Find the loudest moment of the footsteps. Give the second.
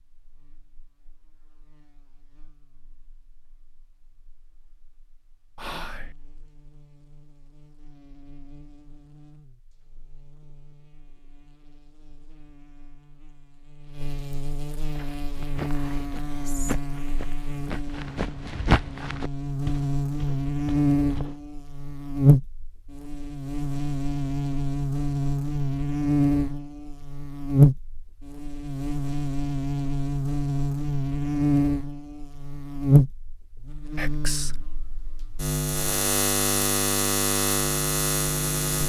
19 s.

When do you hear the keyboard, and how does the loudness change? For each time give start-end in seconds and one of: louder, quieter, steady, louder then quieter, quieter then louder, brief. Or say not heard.
not heard.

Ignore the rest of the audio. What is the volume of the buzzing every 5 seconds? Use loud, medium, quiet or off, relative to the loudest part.
quiet, quiet, quiet, medium, loud, loud, loud, loud.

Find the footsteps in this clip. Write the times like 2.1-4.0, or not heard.
14.8-21.4.